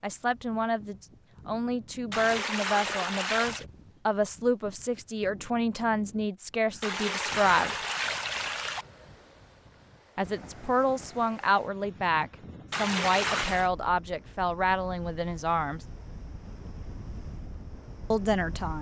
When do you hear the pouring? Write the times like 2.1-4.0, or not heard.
2.1-3.6, 6.8-8.8, 12.7-13.7.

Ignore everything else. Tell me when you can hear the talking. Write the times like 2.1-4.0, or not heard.
0.0-7.8, 10.2-15.8, 18.1-18.7.